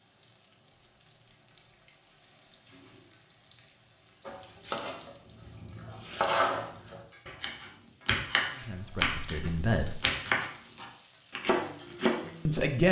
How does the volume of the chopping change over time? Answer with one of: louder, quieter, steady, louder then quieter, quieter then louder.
louder.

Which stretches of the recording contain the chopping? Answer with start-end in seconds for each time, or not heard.
4.2-12.7.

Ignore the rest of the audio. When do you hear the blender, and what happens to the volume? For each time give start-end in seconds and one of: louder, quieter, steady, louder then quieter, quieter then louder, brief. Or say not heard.
not heard.